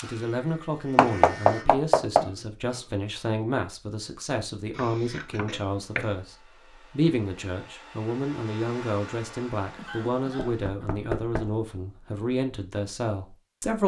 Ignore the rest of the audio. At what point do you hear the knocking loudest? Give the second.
1 s.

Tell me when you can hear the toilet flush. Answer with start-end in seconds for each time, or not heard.
not heard.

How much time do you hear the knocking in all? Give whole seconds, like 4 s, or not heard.
4 s.